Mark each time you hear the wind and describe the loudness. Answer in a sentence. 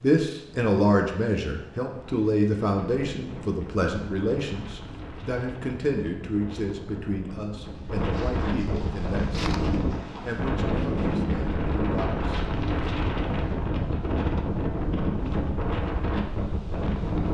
You can hear the wind from 0.0 to 17.3 s, getting louder.